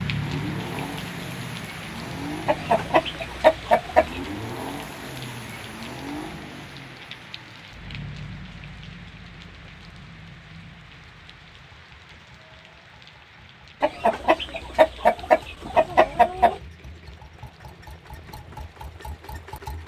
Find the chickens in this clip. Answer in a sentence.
The chickens can be heard from 2.5 to 4.2 s and from 13.8 to 16.6 s.